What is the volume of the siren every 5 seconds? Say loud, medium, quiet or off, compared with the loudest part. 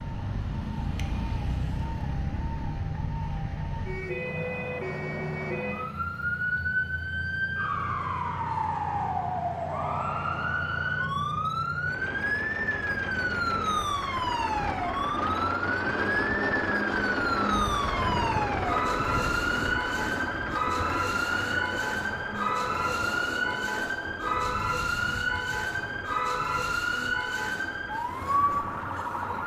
medium, loud, loud, loud, loud, loud.